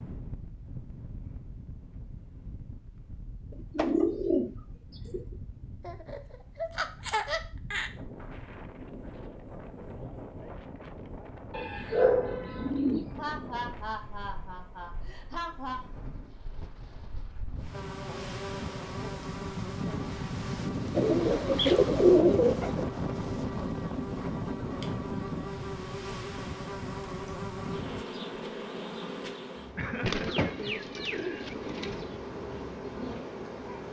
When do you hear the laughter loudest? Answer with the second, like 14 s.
7 s.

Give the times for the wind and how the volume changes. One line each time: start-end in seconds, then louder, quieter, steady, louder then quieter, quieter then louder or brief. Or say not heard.
0.0-28.1 louder.